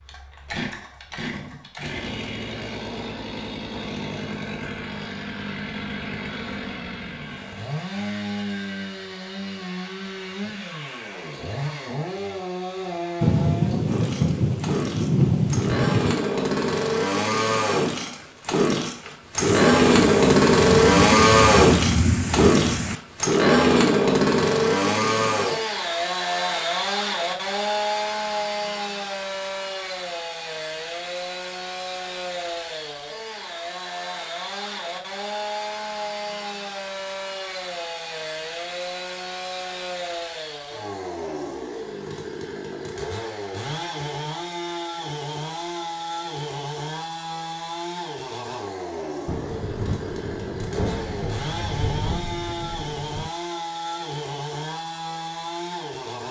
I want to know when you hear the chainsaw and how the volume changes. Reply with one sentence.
You can hear the chainsaw from 0.0 to 56.2 s, getting louder then quieter.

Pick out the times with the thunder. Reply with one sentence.
The thunder can be heard from 13.2 to 16.1 s, from 19.4 to 22.9 s and from 49.2 to 53.3 s.